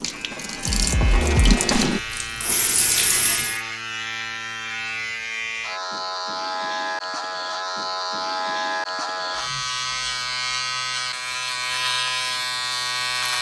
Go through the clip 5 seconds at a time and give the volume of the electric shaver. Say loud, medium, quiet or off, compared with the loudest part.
medium, loud, loud.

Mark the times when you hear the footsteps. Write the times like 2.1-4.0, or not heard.
not heard.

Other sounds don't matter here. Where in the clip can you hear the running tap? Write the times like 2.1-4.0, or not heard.
0.0-3.6.